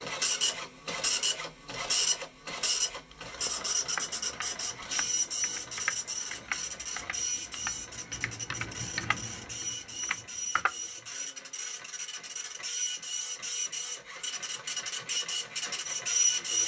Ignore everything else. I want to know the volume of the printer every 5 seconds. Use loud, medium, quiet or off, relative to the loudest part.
loud, medium, medium, loud.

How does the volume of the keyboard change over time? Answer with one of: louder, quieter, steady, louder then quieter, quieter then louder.
steady.